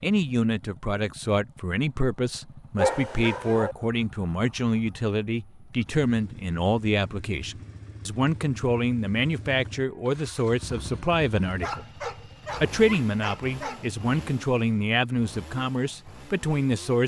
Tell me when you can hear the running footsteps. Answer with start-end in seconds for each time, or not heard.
not heard.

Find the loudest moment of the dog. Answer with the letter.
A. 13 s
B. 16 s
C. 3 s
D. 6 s
C.